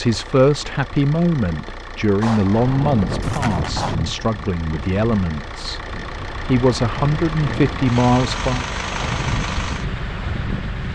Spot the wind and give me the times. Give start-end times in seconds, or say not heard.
2.6-10.8.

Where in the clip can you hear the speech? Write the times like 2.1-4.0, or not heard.
0.0-5.8, 6.5-8.7.